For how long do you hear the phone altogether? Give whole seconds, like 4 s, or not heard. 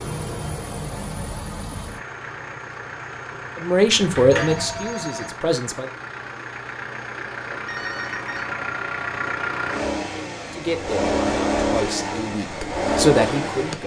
2 s.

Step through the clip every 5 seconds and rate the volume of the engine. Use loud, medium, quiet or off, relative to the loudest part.
medium, medium, loud.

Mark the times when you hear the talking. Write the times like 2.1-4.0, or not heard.
3.6-5.9, 10.5-13.8.